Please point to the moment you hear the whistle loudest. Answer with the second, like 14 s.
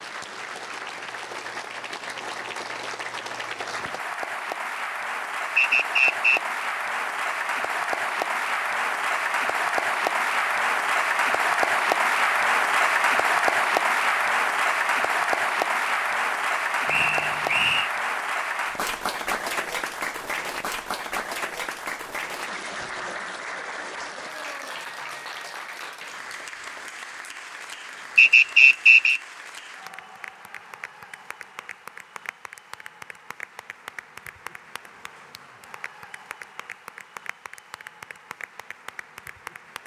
29 s.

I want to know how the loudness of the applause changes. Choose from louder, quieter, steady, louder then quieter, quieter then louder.
louder then quieter.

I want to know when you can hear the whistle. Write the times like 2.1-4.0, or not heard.
5.5-6.4, 16.9-17.9, 28.1-29.2.